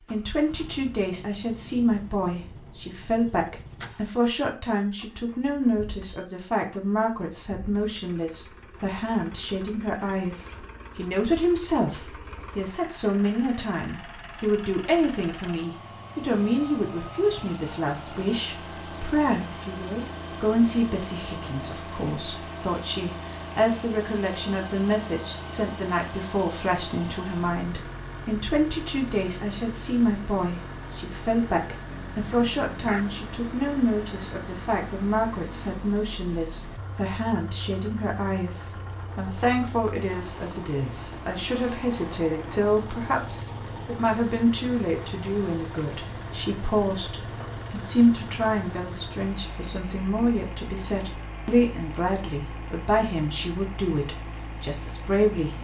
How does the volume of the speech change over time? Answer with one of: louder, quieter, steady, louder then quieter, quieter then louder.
steady.